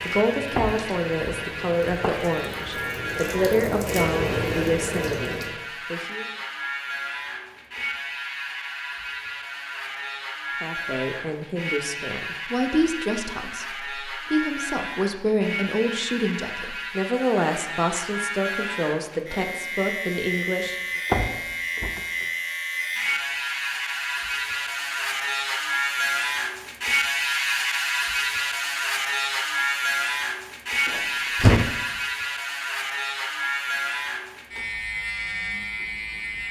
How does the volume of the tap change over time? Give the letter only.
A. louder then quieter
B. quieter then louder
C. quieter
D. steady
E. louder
E.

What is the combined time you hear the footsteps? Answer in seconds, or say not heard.
not heard.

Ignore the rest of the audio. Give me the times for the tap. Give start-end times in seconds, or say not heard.
0.0-5.7.